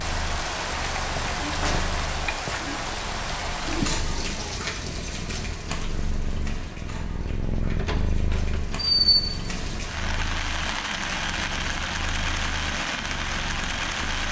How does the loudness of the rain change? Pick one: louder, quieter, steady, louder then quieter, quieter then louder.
quieter then louder.